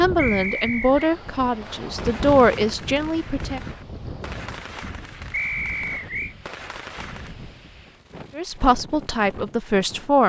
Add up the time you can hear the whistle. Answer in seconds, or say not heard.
2 s.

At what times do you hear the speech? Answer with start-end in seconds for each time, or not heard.
0.0-3.6, 8.3-10.2.